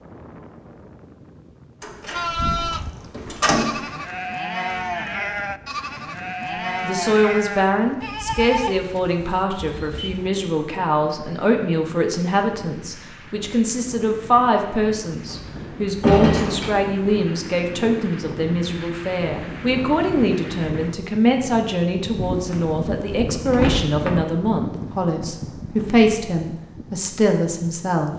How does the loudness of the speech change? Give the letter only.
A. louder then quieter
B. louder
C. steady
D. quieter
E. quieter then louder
C.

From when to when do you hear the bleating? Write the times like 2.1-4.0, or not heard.
2.1-10.3.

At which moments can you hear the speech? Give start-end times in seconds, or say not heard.
6.8-28.1.